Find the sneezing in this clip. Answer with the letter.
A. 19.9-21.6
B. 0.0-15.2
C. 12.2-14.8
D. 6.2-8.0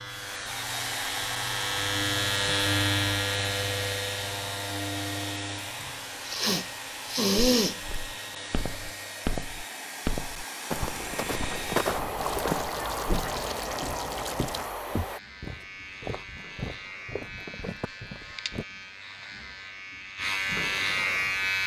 D.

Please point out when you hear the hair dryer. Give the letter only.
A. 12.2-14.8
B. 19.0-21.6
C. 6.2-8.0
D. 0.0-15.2
D.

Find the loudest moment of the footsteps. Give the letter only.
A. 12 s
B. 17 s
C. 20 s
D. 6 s
A.